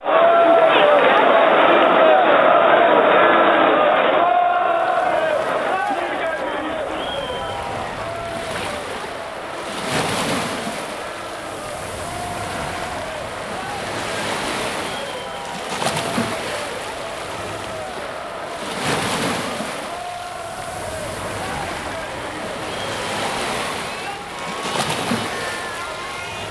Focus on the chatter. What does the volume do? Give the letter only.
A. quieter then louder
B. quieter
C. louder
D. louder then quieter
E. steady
B.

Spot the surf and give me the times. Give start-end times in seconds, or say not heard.
0.0-26.4.